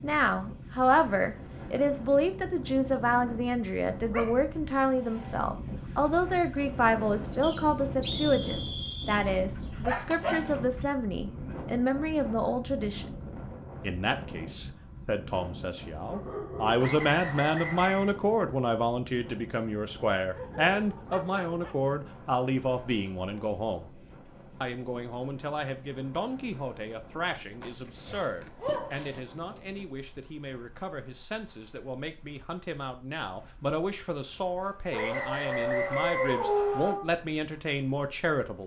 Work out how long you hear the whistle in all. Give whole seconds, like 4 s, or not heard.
5 s.